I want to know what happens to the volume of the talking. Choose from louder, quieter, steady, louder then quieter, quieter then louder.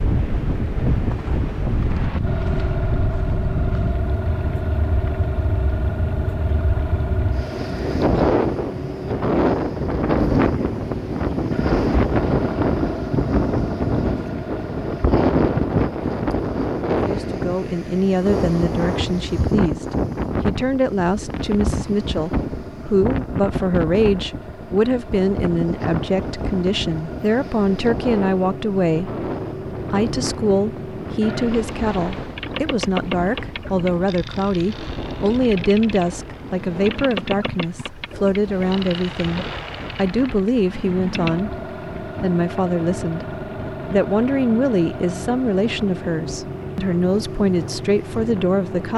steady.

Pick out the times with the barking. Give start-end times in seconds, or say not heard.
not heard.